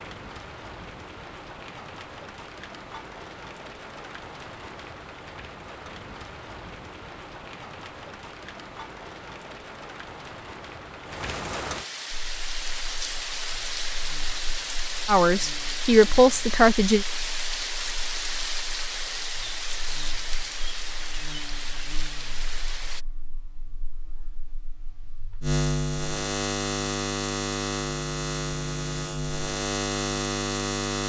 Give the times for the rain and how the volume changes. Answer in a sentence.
You can hear the rain from 0.0 to 23.1 s, getting louder.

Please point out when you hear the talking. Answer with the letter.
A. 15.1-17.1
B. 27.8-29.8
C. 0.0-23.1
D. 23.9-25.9
A.